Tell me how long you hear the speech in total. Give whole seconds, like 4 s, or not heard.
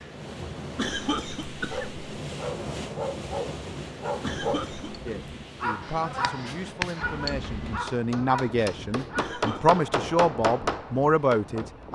7 s.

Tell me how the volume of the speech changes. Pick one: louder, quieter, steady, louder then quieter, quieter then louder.
louder.